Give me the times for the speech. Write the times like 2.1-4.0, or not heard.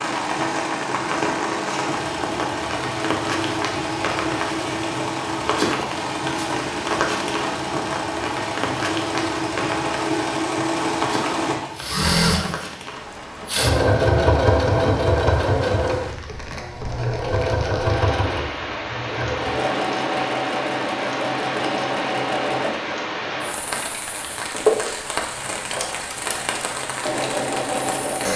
not heard.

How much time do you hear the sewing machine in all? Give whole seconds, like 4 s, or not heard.
28 s.